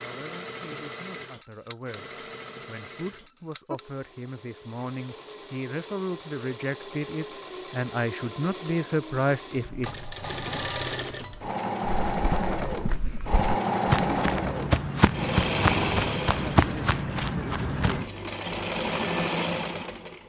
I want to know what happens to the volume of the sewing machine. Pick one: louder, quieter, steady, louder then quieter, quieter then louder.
louder.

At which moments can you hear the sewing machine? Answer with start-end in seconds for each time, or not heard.
0.0-20.2.